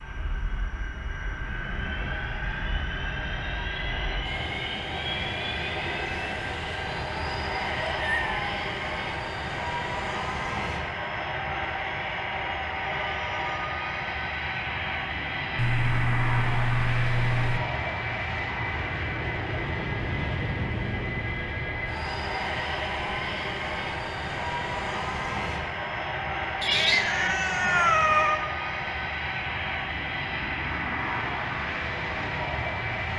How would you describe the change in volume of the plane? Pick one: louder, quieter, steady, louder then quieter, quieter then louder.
steady.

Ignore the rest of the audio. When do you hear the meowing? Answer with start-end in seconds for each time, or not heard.
7.8-8.4, 15.6-17.6, 26.6-28.4.